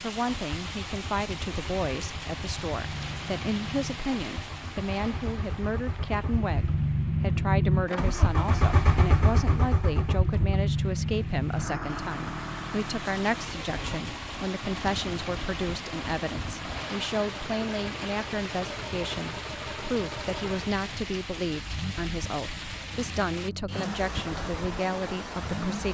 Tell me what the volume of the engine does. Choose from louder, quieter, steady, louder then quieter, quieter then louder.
louder then quieter.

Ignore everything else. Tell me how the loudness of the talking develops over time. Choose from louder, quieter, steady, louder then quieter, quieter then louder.
steady.